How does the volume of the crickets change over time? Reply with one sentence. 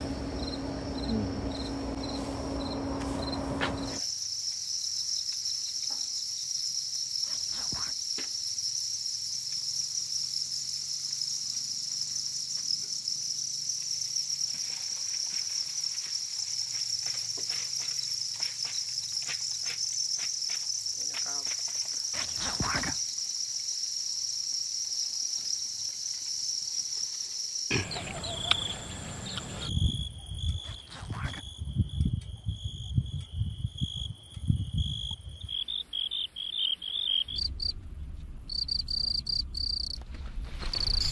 The volume of the crickets stays about the same.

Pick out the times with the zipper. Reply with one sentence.
You can hear the zipper from 7.2 to 8.0 s, from 22.1 to 23.0 s and from 30.6 to 31.4 s.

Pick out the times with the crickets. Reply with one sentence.
The crickets can be heard from 0.0 to 41.0 s.